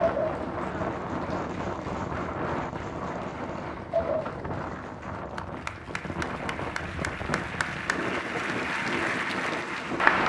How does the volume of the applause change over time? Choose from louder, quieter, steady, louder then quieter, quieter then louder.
louder.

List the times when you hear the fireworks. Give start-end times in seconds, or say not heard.
0.0-5.4.